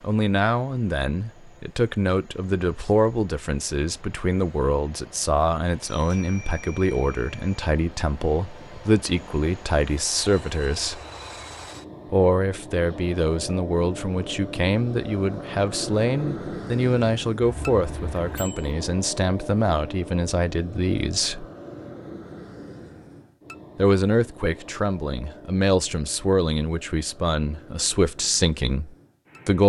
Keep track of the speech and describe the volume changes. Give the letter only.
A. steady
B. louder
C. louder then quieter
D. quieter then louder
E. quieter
A.